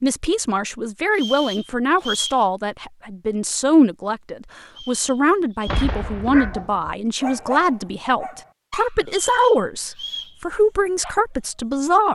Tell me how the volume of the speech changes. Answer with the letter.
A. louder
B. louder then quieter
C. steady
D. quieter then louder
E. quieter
C.